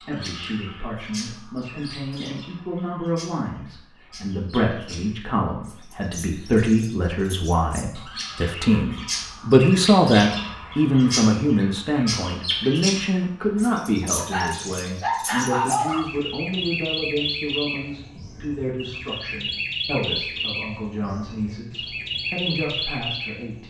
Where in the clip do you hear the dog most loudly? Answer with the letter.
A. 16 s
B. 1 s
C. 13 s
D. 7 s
A.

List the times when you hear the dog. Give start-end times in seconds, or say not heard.
14.2-16.1.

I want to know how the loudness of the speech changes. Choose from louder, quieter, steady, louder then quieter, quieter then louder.
louder then quieter.